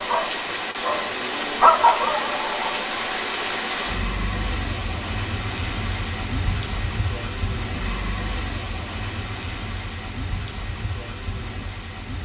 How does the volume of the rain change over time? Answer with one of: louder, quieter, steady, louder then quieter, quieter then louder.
quieter.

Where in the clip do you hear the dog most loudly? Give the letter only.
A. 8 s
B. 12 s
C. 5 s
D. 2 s
D.